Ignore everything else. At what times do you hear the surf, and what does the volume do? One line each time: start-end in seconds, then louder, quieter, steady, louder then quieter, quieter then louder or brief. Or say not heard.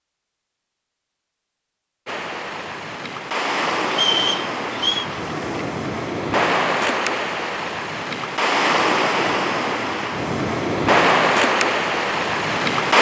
2.0-12.9 louder.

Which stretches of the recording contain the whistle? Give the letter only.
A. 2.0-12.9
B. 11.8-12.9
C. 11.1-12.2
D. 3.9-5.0
D.